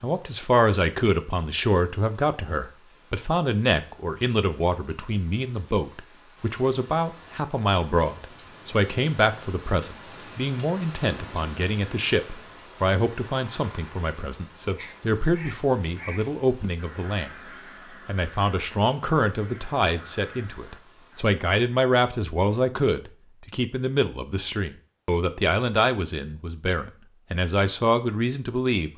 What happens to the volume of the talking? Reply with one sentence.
The loudness of the talking stays about the same.